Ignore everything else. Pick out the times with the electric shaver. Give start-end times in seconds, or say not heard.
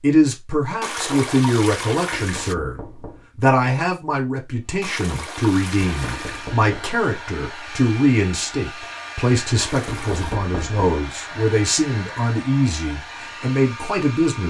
not heard.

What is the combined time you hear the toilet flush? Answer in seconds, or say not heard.
4 s.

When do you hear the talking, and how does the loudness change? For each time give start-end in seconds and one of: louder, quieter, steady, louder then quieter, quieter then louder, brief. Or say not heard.
0.0-14.4 steady.